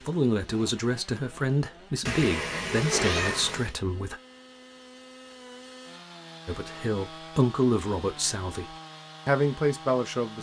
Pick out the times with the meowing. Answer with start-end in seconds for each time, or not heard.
2.0-3.8.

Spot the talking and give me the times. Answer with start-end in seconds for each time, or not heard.
0.0-4.2, 6.5-10.3.